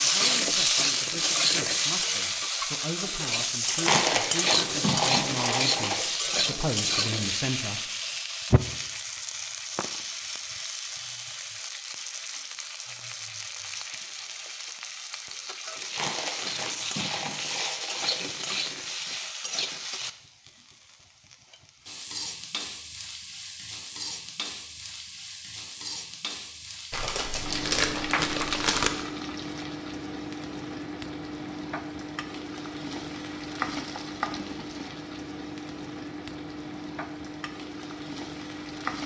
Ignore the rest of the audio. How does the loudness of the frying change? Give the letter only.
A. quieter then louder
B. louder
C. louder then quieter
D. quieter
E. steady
D.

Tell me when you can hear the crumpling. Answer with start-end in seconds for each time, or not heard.
3.6-6.0, 15.8-18.4, 26.9-28.9.